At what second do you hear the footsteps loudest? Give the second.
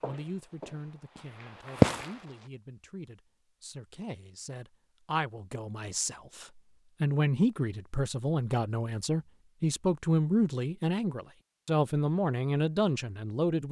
2 s.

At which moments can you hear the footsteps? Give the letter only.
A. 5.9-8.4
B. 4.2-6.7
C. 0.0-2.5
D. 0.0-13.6
C.